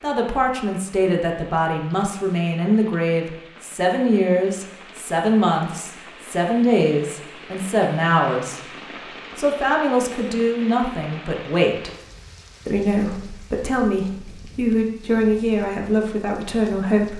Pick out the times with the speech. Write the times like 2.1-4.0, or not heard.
0.0-8.6, 9.3-11.9, 12.7-17.1.